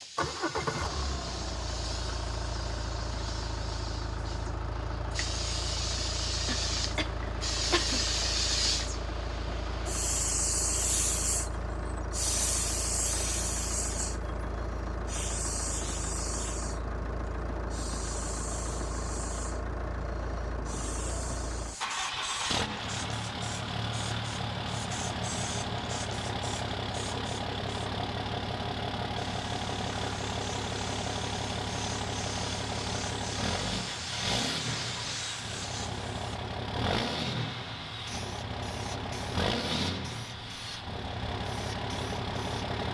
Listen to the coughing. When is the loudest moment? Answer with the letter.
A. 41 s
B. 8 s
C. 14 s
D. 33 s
B.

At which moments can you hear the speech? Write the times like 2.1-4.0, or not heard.
not heard.